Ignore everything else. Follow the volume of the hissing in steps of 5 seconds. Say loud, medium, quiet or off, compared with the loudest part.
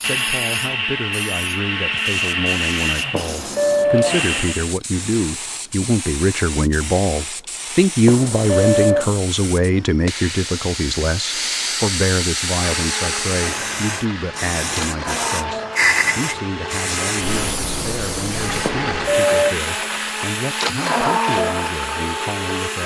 medium, medium, loud, loud, medium.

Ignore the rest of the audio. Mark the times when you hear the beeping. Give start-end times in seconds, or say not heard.
3.1-4.5, 8.1-9.2, 18.6-19.6.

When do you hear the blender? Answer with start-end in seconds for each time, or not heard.
0.0-4.7, 12.5-22.8.